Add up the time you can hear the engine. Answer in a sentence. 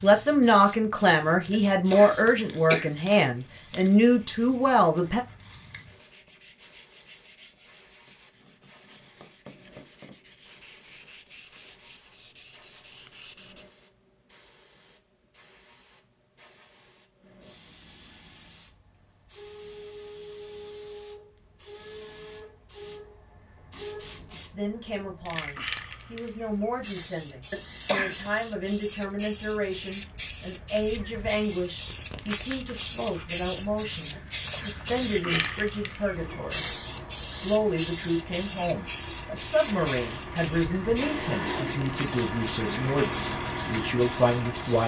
The engine can be heard for 9 seconds in total.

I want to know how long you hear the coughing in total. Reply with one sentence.
The coughing can be heard for 4 seconds in total.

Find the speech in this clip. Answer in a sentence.
You can hear the speech from 0.0 to 5.2 s, from 24.5 to 36.6 s and from 37.2 to 44.8 s.